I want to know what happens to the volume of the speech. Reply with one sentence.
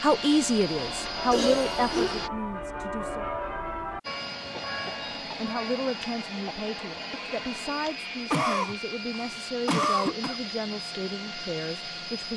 The volume of the speech goes down.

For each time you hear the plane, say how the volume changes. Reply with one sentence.
The plane can be heard briefly from 0.0 to 2.3 s; and from 4.0 to 12.3 s, at a steady volume.